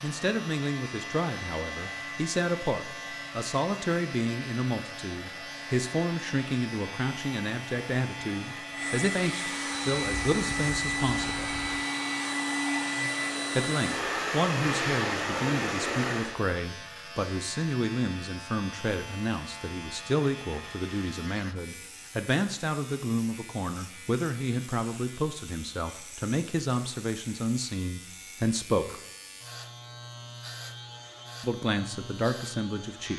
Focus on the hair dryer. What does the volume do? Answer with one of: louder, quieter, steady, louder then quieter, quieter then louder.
louder.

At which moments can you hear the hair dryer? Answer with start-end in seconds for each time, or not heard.
0.0-16.4.